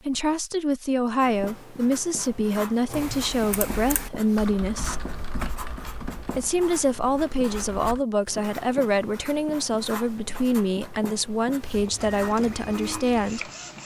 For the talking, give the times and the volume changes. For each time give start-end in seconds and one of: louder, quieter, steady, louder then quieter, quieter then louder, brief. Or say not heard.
0.1-5.0 steady
6.3-13.5 steady.